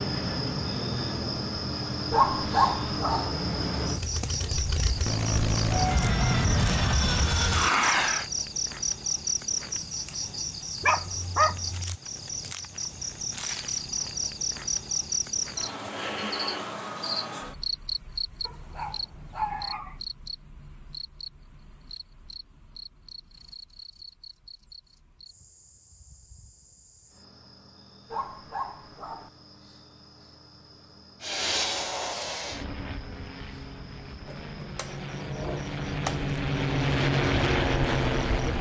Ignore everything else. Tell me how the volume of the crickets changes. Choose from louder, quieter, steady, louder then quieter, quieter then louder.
quieter.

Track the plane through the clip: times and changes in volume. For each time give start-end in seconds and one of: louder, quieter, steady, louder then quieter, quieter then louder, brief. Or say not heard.
0.0-8.2 louder
31.2-38.5 quieter then louder.